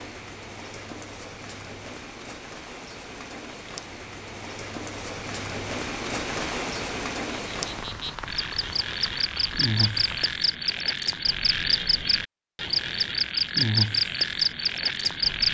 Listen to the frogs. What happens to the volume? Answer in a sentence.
The volume of the frogs goes up.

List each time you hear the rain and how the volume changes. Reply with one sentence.
You can hear the rain from 0.0 to 10.3 s, getting louder then quieter.